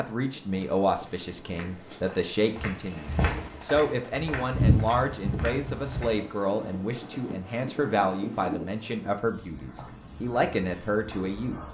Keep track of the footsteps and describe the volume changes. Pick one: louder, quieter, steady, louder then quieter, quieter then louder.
louder then quieter.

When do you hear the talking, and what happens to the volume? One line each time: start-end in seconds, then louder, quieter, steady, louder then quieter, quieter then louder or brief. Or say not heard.
0.0-11.6 steady.